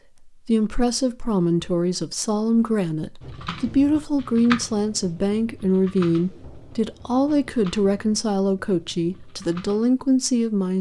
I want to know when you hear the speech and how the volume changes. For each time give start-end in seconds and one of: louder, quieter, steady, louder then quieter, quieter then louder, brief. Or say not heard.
0.2-10.7 steady.